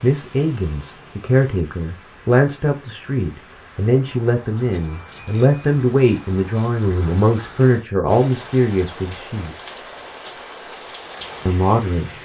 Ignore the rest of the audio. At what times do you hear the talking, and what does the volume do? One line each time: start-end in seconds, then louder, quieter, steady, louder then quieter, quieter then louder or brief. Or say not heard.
0.0-9.8 steady
11.4-12.1 brief.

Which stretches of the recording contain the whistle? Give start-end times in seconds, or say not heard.
not heard.